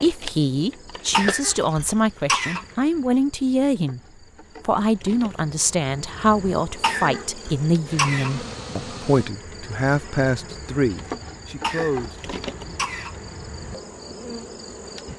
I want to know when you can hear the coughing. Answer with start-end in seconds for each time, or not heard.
1.1-2.6, 6.8-8.3, 11.6-13.2.